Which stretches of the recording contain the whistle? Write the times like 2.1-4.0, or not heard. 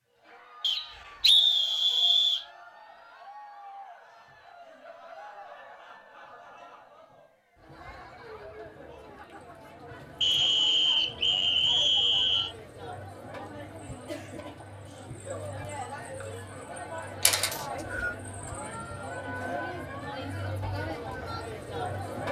0.6-2.5, 10.2-12.6, 17.5-18.1.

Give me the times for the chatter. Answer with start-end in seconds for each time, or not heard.
0.1-22.2.